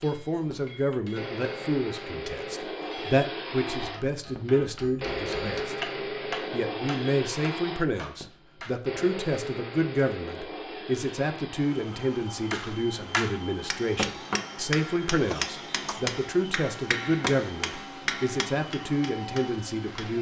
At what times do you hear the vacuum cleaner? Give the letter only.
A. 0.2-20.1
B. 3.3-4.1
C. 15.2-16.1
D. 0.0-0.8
A.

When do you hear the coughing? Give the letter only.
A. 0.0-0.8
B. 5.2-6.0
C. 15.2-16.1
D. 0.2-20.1
C.